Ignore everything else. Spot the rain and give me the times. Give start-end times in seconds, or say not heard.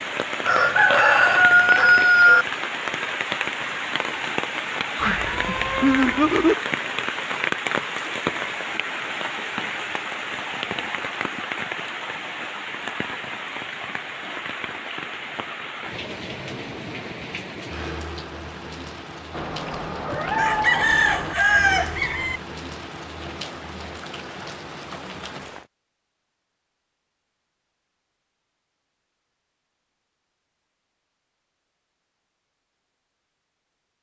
0.0-25.6.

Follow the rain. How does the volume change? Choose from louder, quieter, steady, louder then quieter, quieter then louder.
quieter.